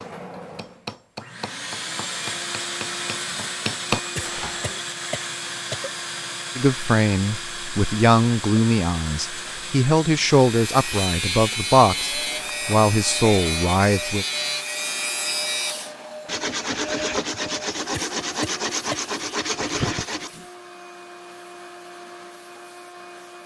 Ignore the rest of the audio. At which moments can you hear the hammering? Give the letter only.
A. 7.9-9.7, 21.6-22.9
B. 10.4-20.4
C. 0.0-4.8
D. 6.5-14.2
C.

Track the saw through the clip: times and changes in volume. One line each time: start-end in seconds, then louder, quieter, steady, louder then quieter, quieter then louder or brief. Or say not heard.
10.4-20.4 steady.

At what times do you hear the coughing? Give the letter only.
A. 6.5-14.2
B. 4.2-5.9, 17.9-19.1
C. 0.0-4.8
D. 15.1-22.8
B.